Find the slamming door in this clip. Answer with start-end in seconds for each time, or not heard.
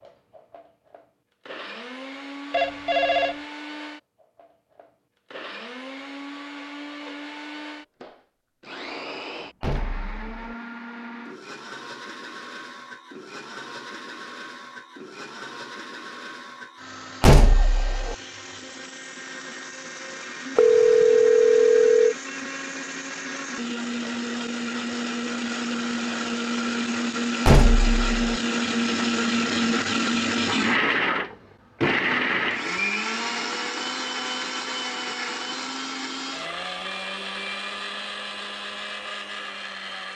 9.6-10.6, 17.2-18.1, 27.4-28.4.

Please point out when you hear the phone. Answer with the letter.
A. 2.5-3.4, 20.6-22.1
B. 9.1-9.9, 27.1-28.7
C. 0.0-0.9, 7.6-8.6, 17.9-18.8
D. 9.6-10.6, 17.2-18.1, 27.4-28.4
A.